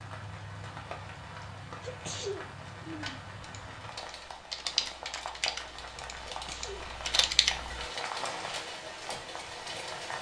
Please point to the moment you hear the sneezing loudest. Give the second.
2 s.